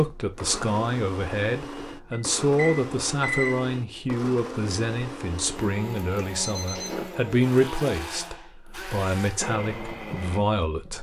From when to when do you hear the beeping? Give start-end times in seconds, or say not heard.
2.1-3.6, 6.4-7.2.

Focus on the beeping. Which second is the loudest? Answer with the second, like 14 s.
3 s.